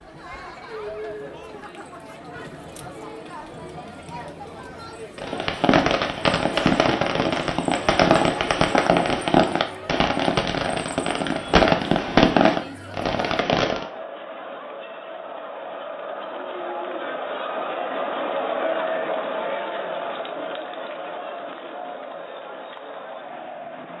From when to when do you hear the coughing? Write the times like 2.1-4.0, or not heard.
not heard.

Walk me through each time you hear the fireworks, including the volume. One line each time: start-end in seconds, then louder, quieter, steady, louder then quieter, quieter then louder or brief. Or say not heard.
5.2-13.8 steady.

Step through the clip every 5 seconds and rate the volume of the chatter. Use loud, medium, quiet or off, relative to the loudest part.
medium, medium, medium, loud, medium.